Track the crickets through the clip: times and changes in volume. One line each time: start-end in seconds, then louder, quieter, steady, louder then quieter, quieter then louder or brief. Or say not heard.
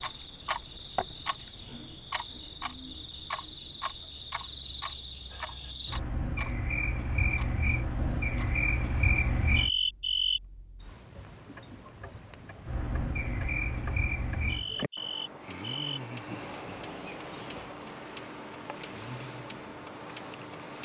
0.0-17.9 louder then quieter.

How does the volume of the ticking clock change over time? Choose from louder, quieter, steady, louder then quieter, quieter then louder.
quieter then louder.